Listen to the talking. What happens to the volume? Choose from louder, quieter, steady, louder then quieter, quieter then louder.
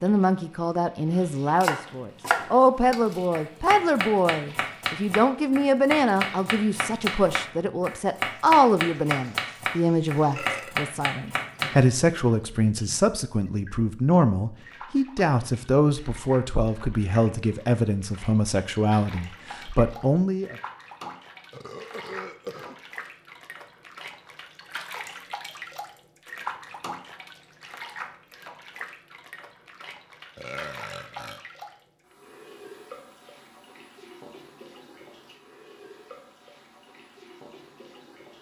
steady.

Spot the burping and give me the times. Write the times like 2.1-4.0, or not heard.
10.3-10.9, 21.5-22.8, 30.4-31.4.